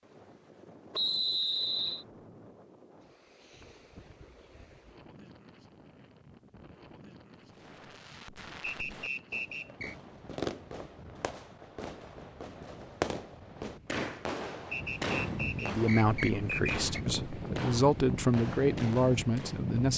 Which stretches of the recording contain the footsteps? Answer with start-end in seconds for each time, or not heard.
not heard.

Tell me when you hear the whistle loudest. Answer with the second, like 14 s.
1 s.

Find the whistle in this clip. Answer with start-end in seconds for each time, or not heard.
0.9-2.0, 8.6-9.9, 14.7-17.0.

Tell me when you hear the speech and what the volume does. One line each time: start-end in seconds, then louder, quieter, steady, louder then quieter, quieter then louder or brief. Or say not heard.
15.6-19.9 quieter then louder.